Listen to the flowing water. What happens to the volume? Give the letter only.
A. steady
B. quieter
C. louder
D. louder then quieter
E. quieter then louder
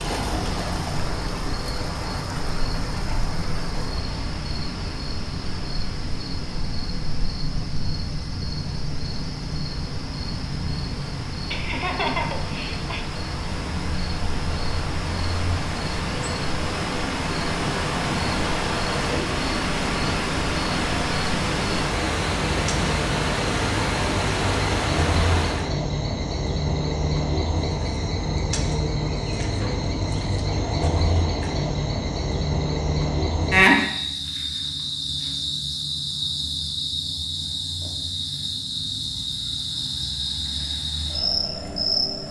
E.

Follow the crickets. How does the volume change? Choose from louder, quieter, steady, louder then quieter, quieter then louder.
louder.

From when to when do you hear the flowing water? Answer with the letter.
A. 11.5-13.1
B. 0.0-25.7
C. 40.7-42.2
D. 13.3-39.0
B.